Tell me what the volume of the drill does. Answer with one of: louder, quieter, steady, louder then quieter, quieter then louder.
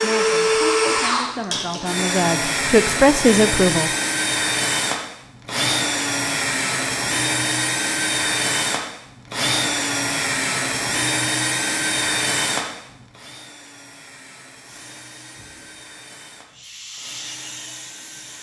quieter.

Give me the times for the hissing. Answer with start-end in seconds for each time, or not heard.
14.7-18.3.